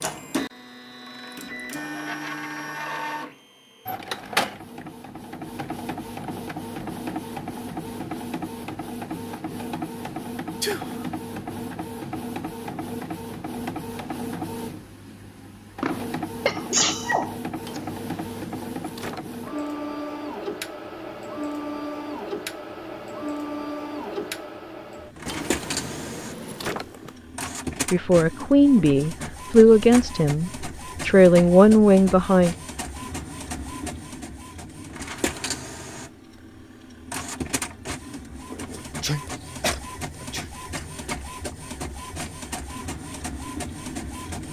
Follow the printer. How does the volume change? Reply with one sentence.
The volume of the printer stays about the same.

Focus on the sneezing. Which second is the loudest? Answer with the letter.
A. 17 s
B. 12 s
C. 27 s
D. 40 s
A.